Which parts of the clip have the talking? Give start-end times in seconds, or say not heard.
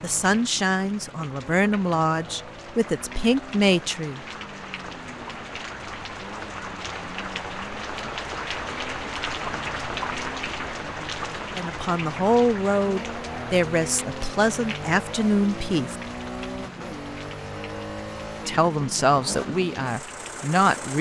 0.0-4.2, 11.6-15.9, 18.4-20.9.